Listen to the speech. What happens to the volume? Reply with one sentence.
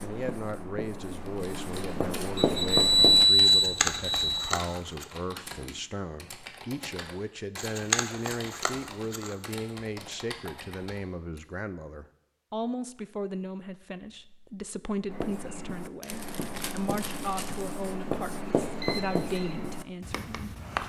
The loudness of the speech stays about the same.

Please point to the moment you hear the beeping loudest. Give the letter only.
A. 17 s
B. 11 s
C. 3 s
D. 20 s
C.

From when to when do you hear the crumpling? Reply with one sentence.
You can hear the crumpling from 3.5 to 5.0 s, from 7.5 to 9.5 s and from 16.0 to 17.8 s.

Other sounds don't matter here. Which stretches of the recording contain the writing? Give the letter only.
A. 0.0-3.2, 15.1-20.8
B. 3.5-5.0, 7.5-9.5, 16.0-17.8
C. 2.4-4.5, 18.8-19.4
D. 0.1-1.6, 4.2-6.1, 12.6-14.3
A.